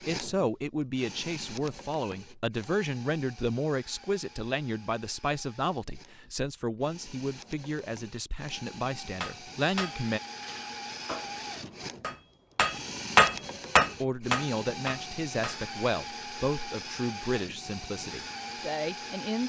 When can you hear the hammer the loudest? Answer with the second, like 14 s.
13 s.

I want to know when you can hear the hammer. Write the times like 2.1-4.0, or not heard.
9.2-15.6.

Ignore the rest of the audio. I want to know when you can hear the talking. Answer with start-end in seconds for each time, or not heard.
0.1-10.2, 14.0-19.4.